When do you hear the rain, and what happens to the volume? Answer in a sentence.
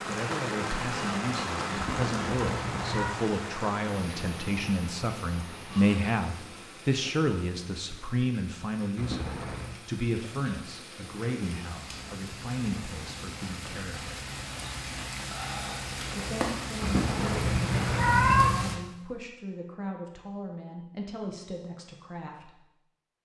The rain can be heard from 0.0 to 18.8 s, getting quieter then louder.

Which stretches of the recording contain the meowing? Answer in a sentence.
You can hear the meowing from 1.7 to 3.1 s, from 8.9 to 9.8 s and from 16.8 to 18.6 s.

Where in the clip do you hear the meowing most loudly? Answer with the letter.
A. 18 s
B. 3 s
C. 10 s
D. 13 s
A.